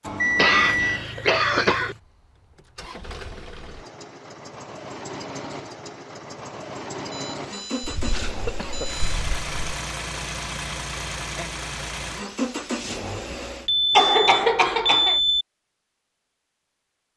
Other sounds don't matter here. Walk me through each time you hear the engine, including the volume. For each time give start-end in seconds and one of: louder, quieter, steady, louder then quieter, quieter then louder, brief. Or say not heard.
0.0-13.7 louder.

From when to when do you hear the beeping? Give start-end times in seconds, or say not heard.
0.0-1.1, 7.1-9.2, 13.7-15.4.